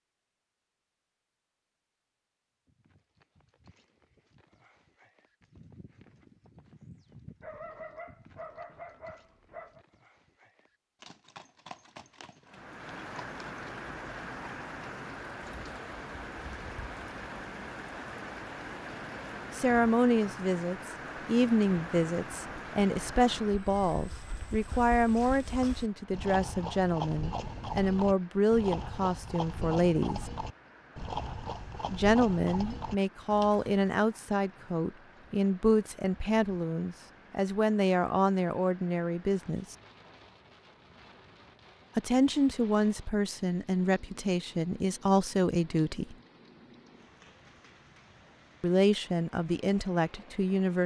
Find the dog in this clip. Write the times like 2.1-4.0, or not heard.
7.4-9.8.